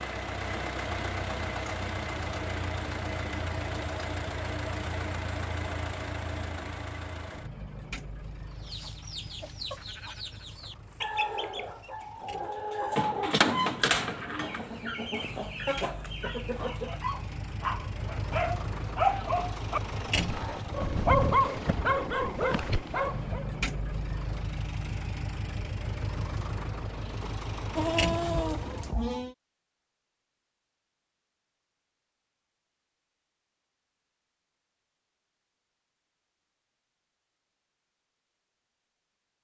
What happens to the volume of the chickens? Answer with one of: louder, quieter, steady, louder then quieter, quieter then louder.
louder then quieter.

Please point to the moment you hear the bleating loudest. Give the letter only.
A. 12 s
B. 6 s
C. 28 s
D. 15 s
C.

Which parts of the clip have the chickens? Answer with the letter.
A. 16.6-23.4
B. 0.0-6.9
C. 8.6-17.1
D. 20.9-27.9
C.